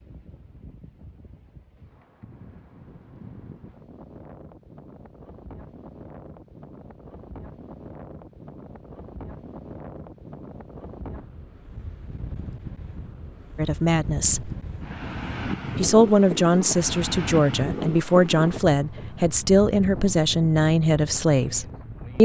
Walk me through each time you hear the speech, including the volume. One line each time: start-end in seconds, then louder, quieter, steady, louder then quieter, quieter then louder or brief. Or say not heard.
13.6-14.5 brief
15.8-22.2 steady.